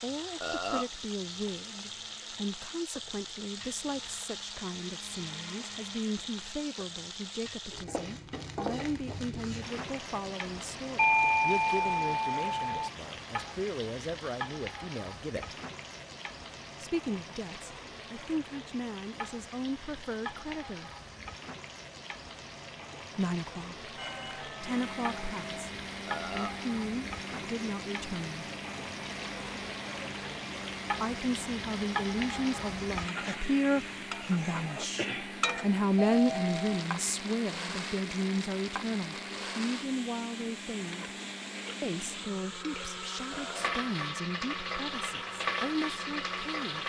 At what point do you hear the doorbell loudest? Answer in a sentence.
The loudest moment of the doorbell is at 11 seconds.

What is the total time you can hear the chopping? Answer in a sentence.
The chopping can't be heard in this clip.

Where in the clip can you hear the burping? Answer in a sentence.
The burping can be heard from 0.4 to 0.9 s, from 26.1 to 26.6 s and from 43.3 to 43.8 s.